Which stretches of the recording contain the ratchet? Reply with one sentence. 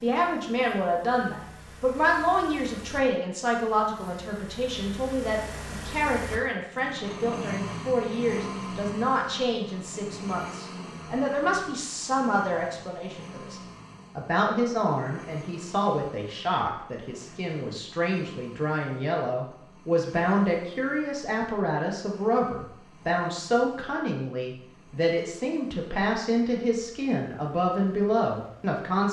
The ratchet can't be heard in this clip.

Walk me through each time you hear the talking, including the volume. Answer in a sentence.
The talking can be heard from 0.0 to 29.0 s, at a steady volume.